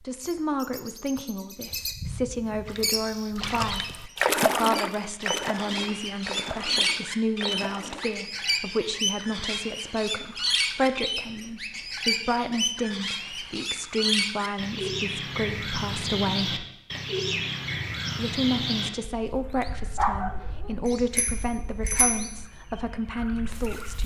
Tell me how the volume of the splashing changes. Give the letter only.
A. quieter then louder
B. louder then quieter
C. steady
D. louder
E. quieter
B.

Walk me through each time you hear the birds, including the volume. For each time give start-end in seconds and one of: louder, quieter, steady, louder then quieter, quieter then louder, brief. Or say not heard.
0.0-24.0 louder then quieter.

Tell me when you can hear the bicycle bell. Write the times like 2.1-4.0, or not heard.
20.9-22.4.